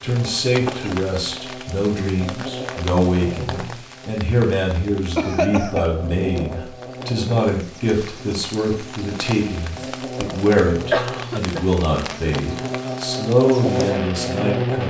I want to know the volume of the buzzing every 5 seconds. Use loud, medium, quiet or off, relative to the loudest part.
medium, medium, loud.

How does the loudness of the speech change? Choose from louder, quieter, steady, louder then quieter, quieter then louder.
steady.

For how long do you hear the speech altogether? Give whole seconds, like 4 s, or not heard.
15 s.